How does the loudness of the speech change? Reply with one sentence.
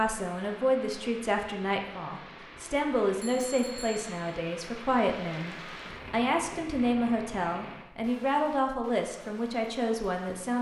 The loudness of the speech stays about the same.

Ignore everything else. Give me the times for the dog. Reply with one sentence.
The dog can't be heard in this clip.